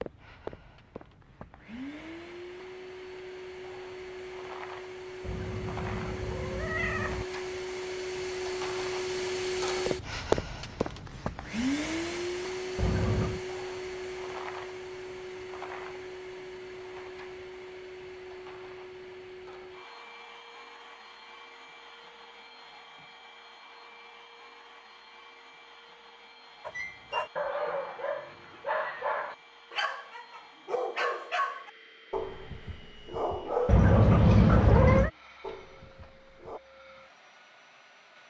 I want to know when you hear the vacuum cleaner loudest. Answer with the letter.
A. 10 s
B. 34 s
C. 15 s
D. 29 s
A.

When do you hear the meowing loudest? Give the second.
34 s.